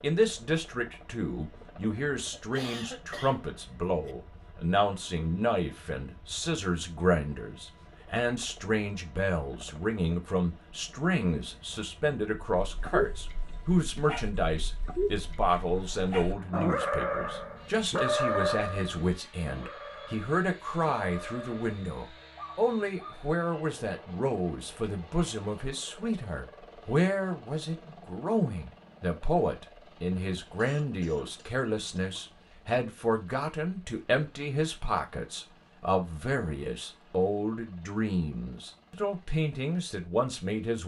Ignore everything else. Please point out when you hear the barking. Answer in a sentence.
You can hear the barking from 12.4 to 23.1 s.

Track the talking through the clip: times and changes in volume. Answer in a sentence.
The talking can be heard from 0.0 to 40.8 s, at a steady volume.